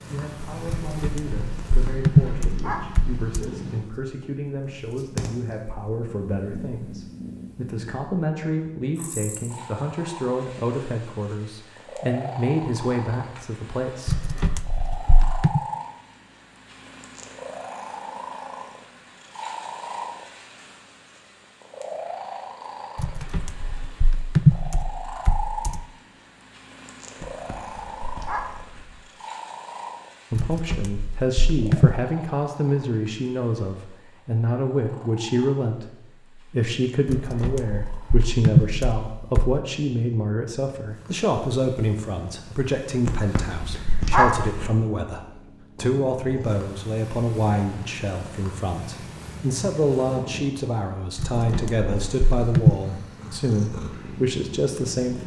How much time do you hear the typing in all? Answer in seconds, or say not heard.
13 s.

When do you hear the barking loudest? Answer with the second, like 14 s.
44 s.